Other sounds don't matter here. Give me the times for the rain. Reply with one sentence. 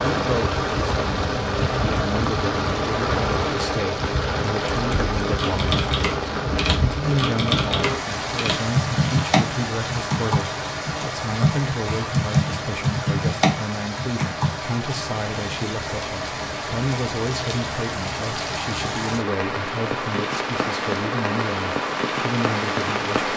You can hear the rain from 0.0 to 23.3 s.